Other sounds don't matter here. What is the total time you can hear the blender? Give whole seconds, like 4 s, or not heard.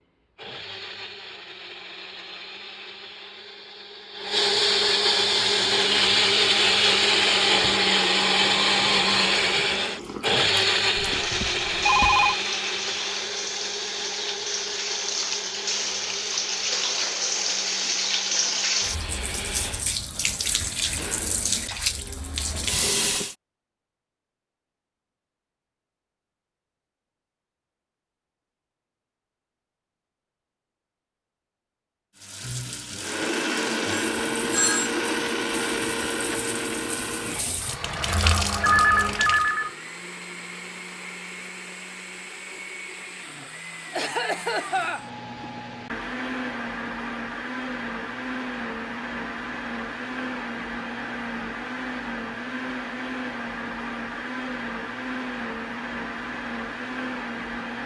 46 s.